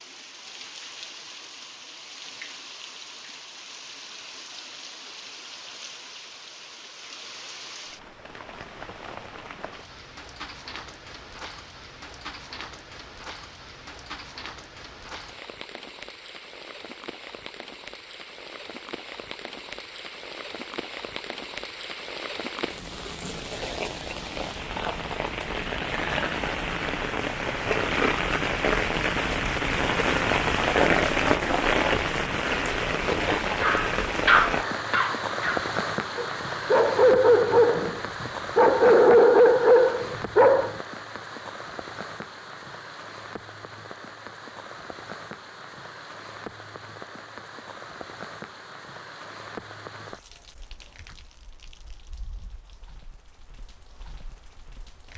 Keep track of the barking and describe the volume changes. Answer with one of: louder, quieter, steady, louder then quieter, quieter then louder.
quieter then louder.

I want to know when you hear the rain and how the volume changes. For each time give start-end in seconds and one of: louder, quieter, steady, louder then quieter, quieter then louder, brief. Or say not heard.
0.0-55.1 louder then quieter.